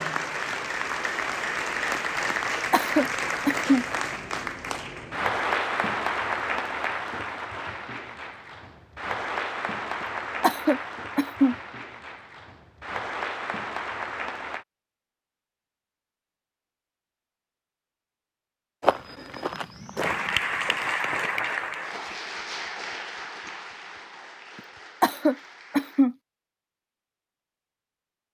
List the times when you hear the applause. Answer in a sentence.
The applause can be heard from 0.0 to 14.7 s and from 19.9 to 26.1 s.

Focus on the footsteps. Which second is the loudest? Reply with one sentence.
The loudest moment of the footsteps is at 19 seconds.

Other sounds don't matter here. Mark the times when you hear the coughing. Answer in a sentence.
The coughing can be heard from 2.7 to 3.9 s, from 10.4 to 11.6 s and from 25.0 to 26.1 s.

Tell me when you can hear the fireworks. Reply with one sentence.
You can't hear the fireworks here.